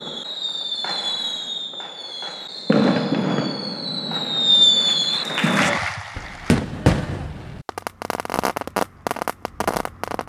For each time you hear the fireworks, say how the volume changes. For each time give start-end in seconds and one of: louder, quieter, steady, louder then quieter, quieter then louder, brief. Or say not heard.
0.0-10.2 louder then quieter.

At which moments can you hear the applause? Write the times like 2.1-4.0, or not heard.
4.7-6.7.